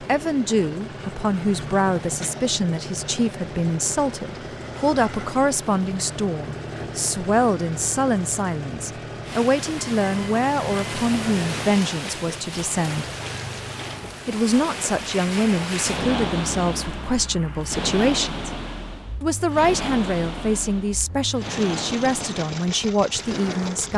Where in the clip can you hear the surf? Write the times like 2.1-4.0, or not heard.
9.2-23.9.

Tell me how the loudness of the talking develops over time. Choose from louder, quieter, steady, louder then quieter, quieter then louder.
steady.